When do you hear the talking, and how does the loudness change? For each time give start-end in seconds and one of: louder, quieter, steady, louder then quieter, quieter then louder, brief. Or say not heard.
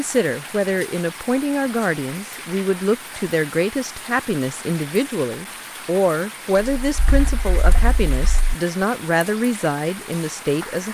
0.0-10.8 steady.